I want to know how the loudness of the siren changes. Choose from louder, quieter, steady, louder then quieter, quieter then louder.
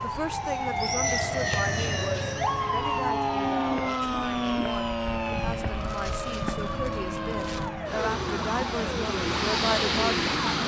quieter.